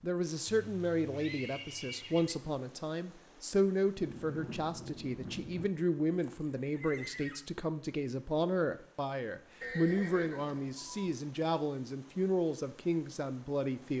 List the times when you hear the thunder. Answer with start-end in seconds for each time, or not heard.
4.0-5.7.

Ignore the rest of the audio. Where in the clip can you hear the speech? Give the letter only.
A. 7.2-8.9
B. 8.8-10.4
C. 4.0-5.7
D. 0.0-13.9
D.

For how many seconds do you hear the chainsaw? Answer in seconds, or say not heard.
not heard.